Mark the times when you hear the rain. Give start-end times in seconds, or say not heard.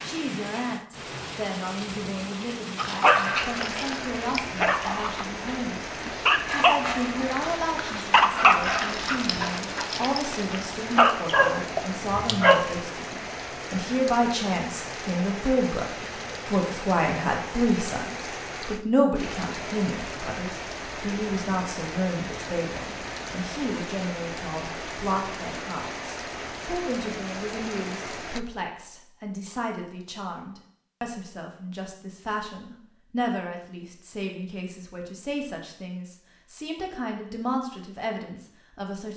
0.0-28.4.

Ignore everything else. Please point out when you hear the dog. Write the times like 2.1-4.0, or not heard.
2.8-12.8.